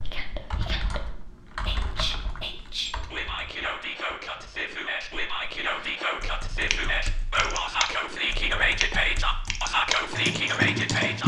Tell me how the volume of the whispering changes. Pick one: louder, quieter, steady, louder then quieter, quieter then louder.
louder.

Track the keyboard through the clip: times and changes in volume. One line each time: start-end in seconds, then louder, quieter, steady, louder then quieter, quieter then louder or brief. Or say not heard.
0.0-11.2 quieter then louder.